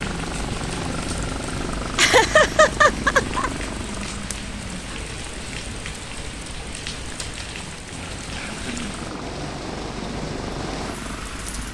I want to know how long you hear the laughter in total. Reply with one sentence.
You can hear the laughter for 2 seconds altogether.